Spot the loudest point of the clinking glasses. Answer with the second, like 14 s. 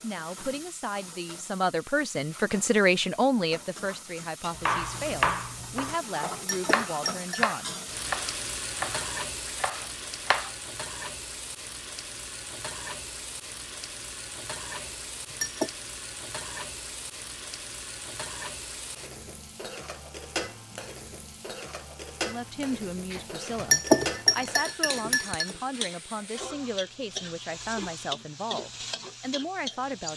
24 s.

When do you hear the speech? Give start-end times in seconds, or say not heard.
0.0-7.8, 22.2-30.1.